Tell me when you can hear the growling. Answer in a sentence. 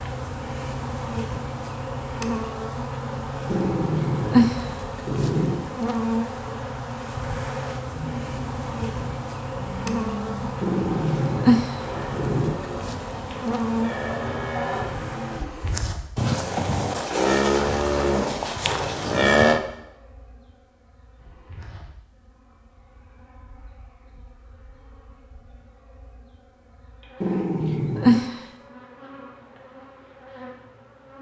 You can hear the growling from 3.5 to 5.7 s, from 10.6 to 12.6 s and from 27.2 to 28.4 s.